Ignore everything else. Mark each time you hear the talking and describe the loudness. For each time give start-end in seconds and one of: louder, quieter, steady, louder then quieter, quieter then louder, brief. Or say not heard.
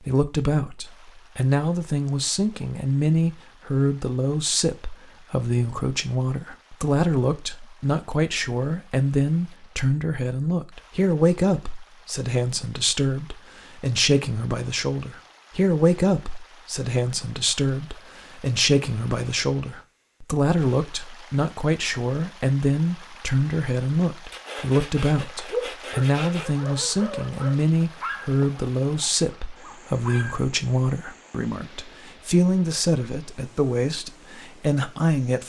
0.0-35.4 steady.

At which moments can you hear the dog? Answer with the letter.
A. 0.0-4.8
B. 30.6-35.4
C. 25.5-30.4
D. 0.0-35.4
C.